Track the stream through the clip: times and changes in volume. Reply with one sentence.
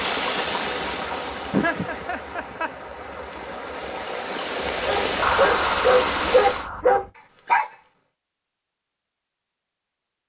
The stream can be heard from 0.0 to 6.7 s, getting quieter then louder.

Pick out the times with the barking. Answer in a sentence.
You can hear the barking from 4.8 to 7.7 s.